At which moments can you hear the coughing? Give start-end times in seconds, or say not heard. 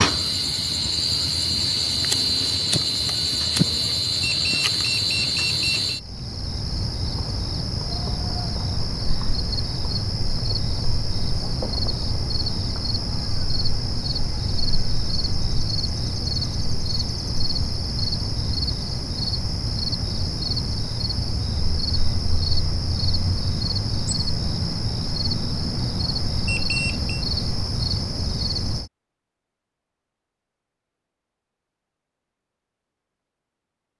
not heard.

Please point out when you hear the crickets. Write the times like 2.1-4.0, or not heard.
0.0-28.9.